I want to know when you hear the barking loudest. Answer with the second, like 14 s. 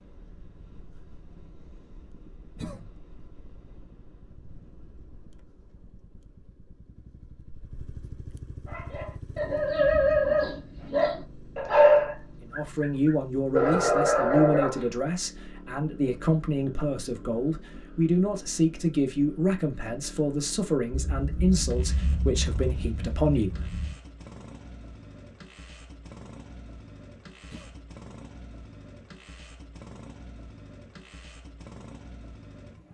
12 s.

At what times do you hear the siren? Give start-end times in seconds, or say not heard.
not heard.